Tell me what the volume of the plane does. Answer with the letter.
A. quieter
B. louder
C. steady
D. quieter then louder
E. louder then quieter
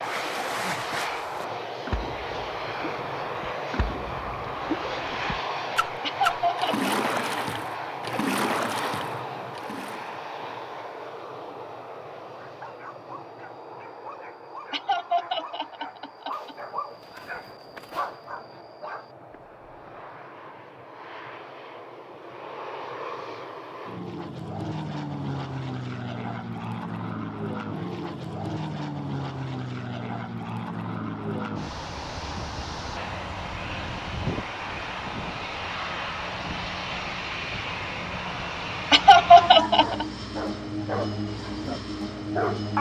D.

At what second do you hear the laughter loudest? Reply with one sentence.
The volume of the laughter peaks at 39 seconds.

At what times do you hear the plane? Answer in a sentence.
You can hear the plane from 0.0 to 42.7 s.